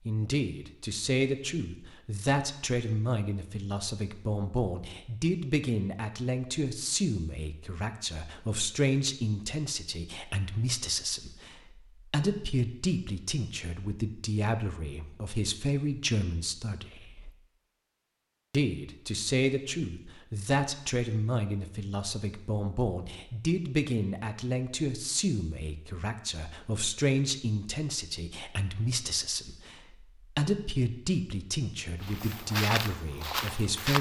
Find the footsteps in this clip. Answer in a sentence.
You can hear the footsteps from 32.0 to 33.9 s.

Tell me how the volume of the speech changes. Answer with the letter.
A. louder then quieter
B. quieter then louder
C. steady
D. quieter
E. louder
C.